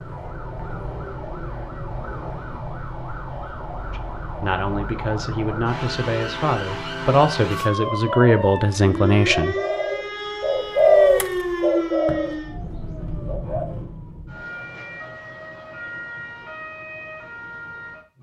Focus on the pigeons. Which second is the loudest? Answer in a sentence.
The volume of the pigeons peaks at 11 seconds.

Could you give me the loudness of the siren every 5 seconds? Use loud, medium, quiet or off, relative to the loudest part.
medium, loud, loud, medium.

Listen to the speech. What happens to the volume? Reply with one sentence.
The volume of the speech goes up.